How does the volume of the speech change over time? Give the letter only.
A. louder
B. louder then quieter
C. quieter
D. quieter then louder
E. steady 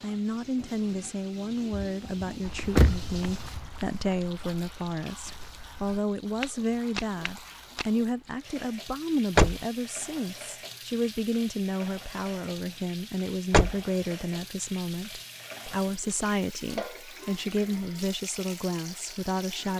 E.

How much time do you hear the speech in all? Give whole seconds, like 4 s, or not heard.
20 s.